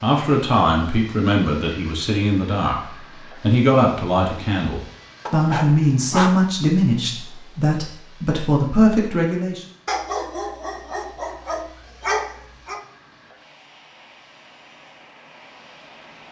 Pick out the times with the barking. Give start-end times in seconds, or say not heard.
5.2-6.4, 9.8-12.8.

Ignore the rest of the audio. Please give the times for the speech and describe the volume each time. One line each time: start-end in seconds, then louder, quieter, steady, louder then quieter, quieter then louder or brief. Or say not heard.
0.0-9.7 steady.